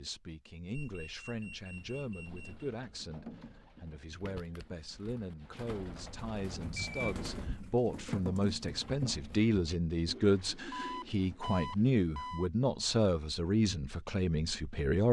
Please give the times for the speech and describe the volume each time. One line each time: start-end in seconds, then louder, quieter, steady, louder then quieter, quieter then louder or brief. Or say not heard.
0.0-15.0 louder.